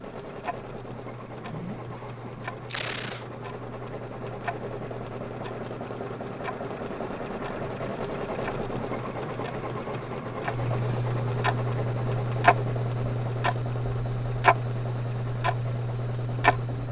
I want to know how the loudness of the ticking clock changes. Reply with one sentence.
The volume of the ticking clock goes up.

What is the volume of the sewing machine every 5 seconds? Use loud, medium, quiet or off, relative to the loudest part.
medium, loud, loud, medium.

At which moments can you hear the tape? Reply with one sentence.
The tape can be heard from 2.6 to 3.2 s.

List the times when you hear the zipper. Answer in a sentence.
You can hear the zipper from 1.2 to 2.5 s.